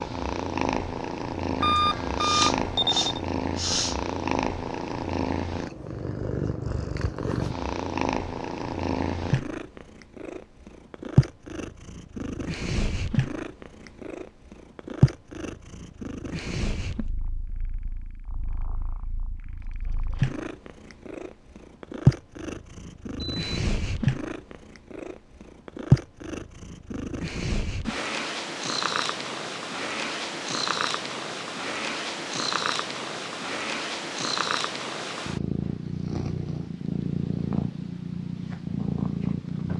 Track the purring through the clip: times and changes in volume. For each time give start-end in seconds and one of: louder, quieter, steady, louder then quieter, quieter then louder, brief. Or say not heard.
0.0-39.7 steady.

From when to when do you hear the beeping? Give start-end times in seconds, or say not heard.
1.6-3.2, 23.1-23.6.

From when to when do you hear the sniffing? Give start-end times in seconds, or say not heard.
1.8-4.0.